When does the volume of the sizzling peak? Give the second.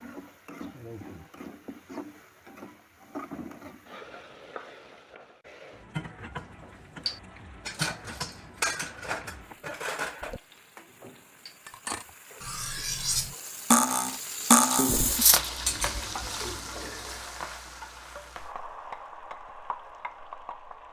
15 s.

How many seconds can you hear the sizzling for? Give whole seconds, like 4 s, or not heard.
21 s.